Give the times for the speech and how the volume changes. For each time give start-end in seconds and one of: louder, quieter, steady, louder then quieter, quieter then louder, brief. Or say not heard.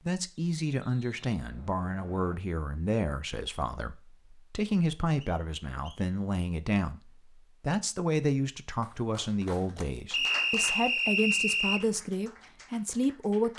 0.1-13.5 steady.